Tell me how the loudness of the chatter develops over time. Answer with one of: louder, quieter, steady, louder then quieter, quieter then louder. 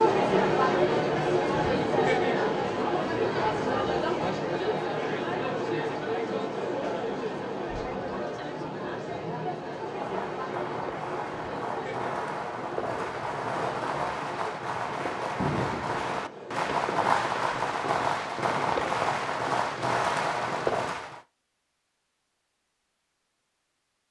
quieter.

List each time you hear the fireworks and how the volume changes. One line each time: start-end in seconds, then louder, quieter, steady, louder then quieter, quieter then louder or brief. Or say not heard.
9.8-21.2 louder.